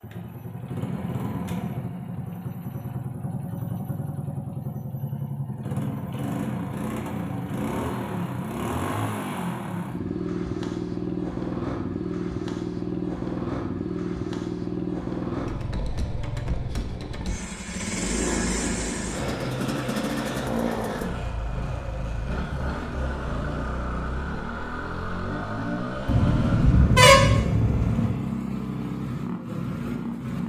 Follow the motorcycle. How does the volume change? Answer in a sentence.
The volume of the motorcycle stays about the same.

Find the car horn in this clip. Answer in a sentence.
You can hear the car horn from 26.1 to 28.1 s.